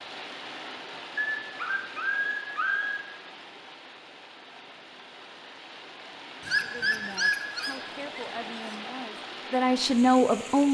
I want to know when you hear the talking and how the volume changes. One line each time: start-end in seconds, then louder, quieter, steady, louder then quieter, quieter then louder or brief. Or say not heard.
6.6-10.6 louder.